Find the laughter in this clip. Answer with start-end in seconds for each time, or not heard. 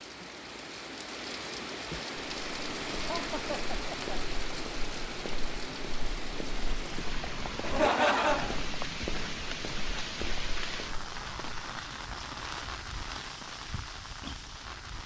3.0-4.2, 7.6-8.6.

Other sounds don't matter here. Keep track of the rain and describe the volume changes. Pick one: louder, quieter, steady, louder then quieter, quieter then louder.
steady.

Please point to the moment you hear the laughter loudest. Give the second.
8 s.